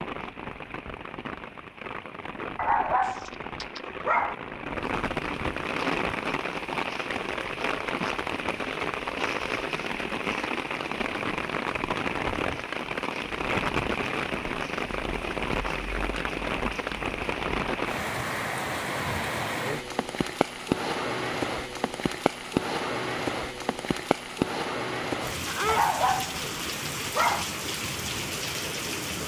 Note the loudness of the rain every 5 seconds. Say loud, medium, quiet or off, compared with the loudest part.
medium, loud, loud, loud, loud, loud.